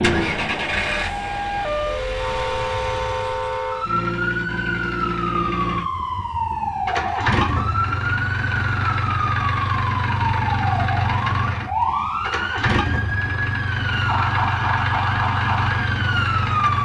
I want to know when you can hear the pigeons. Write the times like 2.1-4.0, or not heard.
not heard.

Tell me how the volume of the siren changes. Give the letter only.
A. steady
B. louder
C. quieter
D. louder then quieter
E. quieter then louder
A.